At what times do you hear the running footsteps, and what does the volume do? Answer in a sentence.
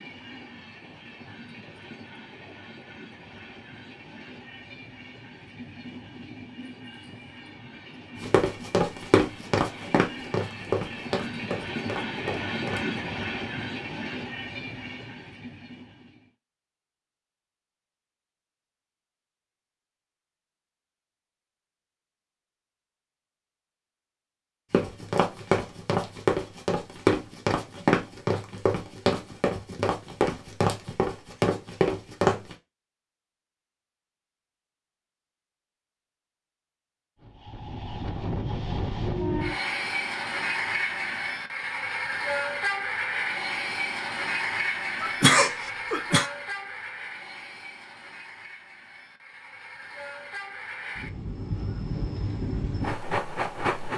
The running footsteps can be heard from 8.2 to 13.0 s, getting quieter; and from 24.7 to 32.5 s, at a steady volume.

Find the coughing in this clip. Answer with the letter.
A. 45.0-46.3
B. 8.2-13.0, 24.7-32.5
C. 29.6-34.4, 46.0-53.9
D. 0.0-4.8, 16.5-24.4
A.